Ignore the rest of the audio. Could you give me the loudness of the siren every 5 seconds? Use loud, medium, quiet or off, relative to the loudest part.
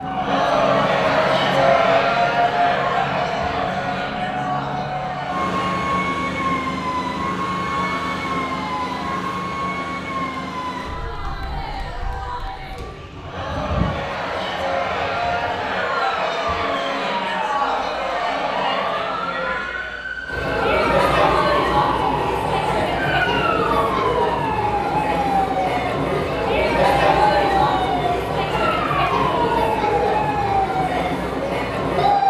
loud, loud, medium, medium, loud, loud, loud.